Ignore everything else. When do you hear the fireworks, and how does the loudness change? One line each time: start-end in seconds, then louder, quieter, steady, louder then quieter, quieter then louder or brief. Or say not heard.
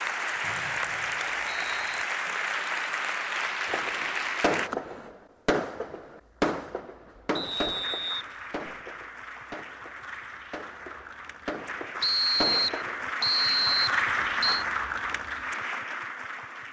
3.6-13.1 quieter then louder.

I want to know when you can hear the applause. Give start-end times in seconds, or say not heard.
0.0-4.7, 7.4-16.6.